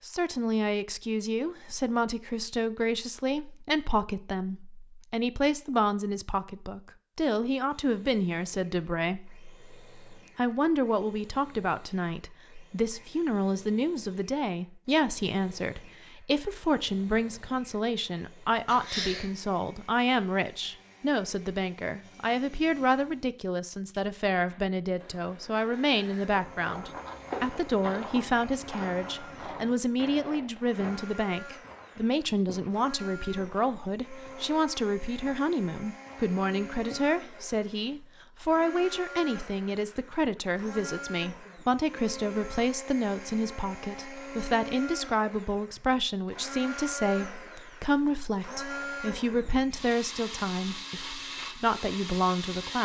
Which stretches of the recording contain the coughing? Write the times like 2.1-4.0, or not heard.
18.6-19.3.